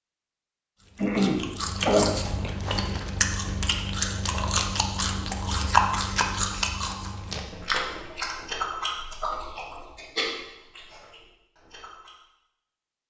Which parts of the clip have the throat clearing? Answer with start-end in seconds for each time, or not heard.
0.9-2.1.